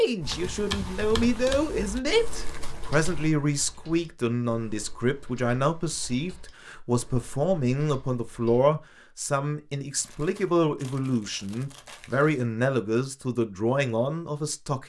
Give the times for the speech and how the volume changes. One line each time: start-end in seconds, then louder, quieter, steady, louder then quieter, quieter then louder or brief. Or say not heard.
0.0-14.8 steady.